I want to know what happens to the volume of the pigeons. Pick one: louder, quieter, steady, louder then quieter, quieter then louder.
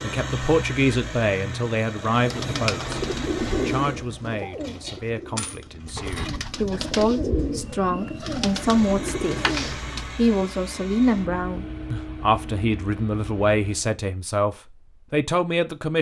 quieter then louder.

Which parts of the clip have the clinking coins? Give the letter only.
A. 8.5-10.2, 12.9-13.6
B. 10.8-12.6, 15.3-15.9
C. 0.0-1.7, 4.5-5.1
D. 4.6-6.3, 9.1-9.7
D.